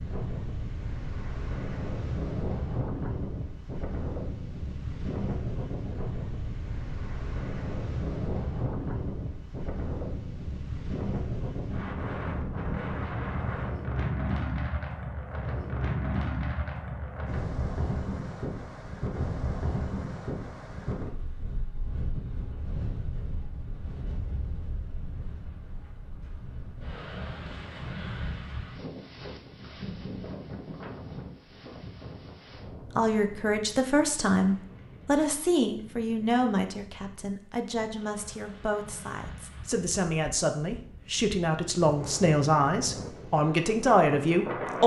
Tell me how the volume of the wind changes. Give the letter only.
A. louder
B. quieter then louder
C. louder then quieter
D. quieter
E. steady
D.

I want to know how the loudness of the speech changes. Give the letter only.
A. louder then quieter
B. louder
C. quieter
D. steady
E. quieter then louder
E.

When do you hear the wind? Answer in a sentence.
You can hear the wind from 0.0 to 44.8 s.